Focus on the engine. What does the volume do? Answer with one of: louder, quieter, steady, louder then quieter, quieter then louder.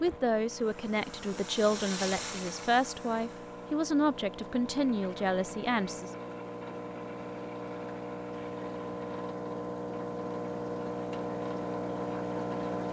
louder.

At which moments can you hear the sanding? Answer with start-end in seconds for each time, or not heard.
not heard.